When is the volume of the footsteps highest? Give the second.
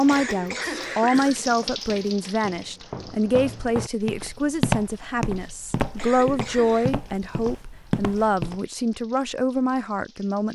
5 s.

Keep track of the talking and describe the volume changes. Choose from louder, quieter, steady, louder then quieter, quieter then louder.
steady.